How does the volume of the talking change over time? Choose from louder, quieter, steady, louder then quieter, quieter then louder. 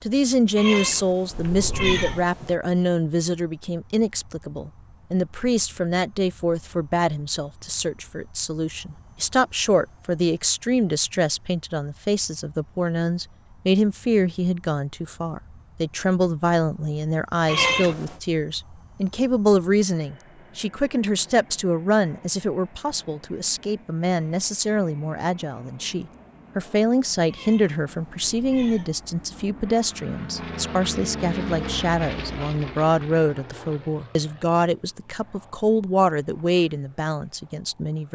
steady.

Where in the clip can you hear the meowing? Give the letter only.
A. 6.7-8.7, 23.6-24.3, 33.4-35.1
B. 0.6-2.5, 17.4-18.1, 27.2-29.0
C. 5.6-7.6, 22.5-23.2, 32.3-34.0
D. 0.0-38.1
B.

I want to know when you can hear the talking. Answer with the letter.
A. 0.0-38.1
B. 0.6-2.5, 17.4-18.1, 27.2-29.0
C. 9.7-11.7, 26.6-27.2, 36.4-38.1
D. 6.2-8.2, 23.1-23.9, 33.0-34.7
A.